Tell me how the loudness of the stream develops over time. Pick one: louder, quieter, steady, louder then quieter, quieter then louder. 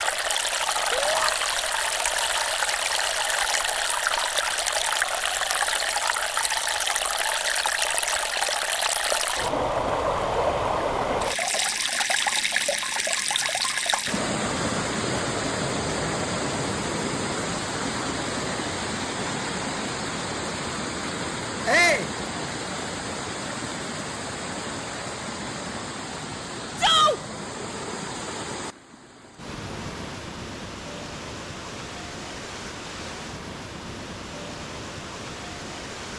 quieter.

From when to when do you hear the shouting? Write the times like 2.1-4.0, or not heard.
0.9-1.3, 21.6-22.1, 26.8-27.2.